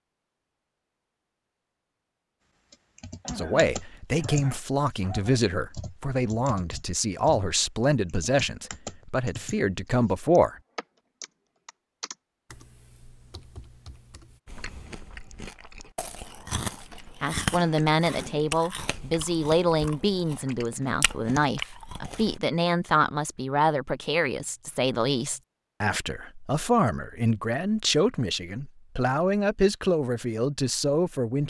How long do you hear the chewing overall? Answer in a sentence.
The chewing can be heard for 8 seconds in total.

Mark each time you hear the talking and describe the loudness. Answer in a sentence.
You can hear the talking from 3.4 to 10.6 s, at a steady volume; and from 17.2 to 31.4 s, at a steady volume.